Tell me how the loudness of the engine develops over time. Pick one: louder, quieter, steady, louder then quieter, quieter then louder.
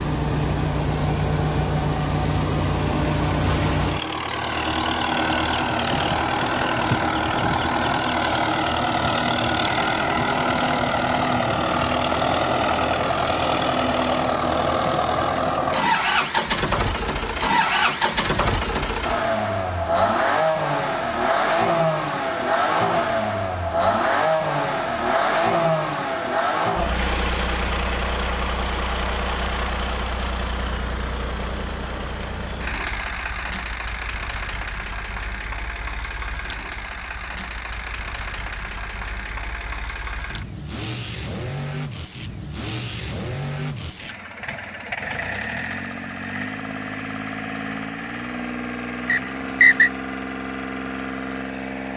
quieter.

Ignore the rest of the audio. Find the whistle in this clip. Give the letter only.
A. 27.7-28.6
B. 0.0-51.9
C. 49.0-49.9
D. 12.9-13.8
C.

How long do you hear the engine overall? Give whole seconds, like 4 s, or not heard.
52 s.